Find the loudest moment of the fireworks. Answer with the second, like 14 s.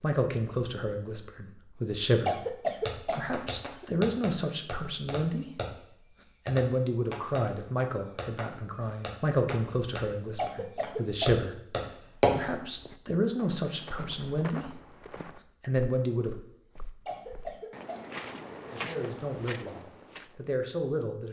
12 s.